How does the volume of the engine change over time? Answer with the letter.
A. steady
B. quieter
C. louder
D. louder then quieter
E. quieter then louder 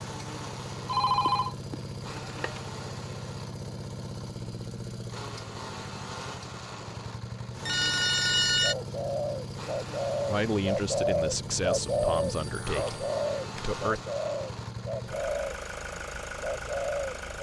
A.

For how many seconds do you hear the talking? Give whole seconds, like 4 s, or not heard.
4 s.